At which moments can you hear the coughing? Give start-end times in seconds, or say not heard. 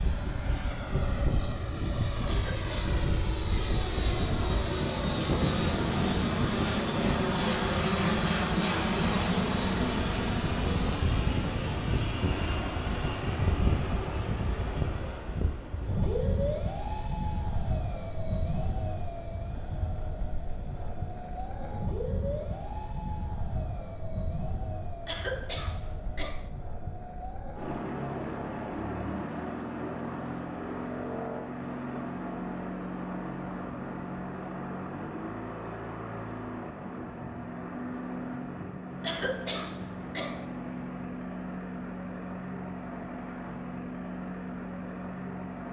2.2-3.0, 25.1-26.5, 39.0-40.5.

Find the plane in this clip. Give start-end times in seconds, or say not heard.
0.0-45.6.